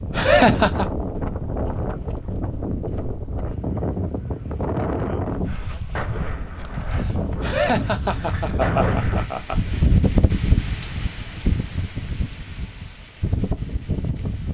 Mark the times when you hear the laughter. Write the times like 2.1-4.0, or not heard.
0.1-0.8, 7.4-9.8.